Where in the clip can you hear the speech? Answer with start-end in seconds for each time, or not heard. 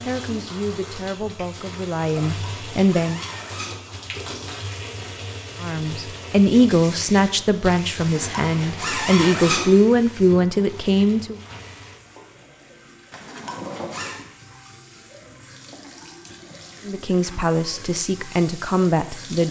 0.0-3.2, 5.6-11.4, 16.9-19.4.